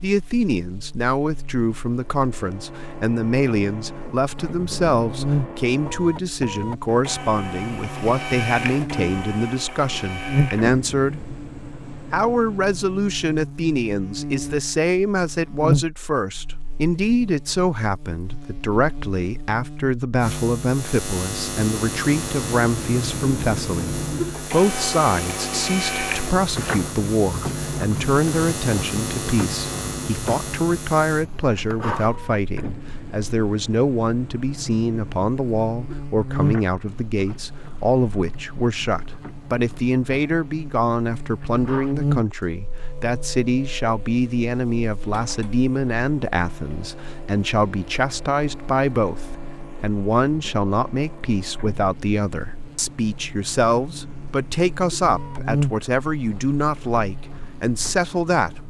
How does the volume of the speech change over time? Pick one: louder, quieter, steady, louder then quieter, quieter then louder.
steady.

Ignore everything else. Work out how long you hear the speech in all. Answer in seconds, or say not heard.
58 s.